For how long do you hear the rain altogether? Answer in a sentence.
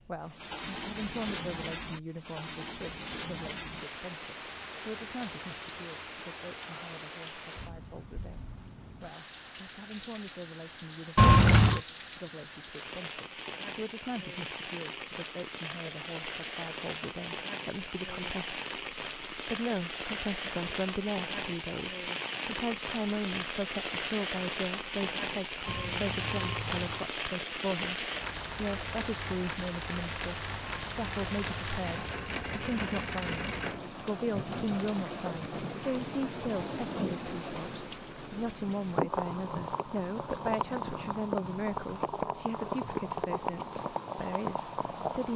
You can hear the rain for 45 seconds altogether.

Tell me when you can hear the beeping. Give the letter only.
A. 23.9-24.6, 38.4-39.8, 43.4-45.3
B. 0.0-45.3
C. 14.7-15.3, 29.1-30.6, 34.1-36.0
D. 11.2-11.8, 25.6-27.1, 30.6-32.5
D.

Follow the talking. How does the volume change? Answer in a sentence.
The loudness of the talking goes up.